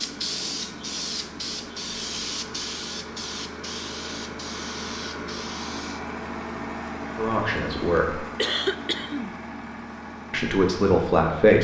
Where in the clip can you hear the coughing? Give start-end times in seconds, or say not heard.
8.3-9.3.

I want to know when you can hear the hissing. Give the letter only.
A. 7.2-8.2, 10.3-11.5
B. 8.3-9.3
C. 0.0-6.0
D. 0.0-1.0
C.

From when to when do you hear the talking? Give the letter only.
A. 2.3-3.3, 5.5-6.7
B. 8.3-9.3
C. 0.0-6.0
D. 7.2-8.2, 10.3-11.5
D.